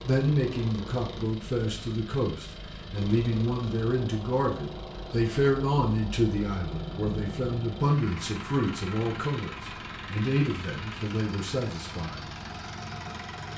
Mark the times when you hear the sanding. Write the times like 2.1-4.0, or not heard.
not heard.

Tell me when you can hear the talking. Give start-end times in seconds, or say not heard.
0.1-12.2.